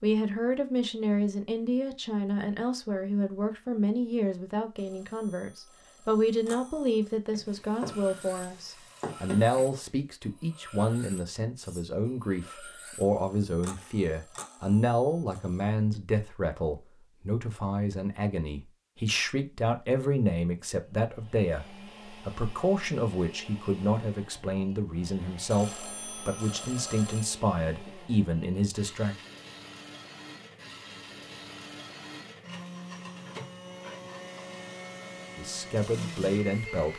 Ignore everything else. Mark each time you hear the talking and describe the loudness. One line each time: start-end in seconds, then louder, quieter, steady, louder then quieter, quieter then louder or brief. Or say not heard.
0.0-29.1 steady
35.4-36.9 brief.